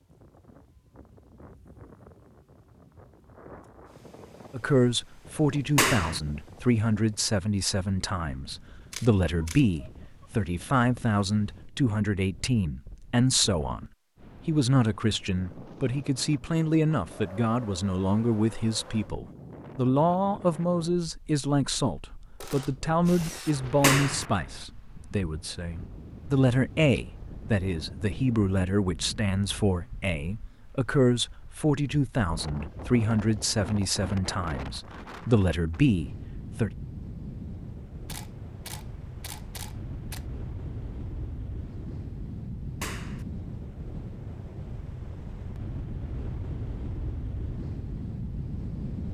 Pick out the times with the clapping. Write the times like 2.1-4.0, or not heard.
5.8-6.2, 23.8-24.2, 42.8-43.2.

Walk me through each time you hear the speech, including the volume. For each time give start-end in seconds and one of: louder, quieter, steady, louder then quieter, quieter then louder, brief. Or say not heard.
4.5-13.8 steady
14.4-36.7 steady.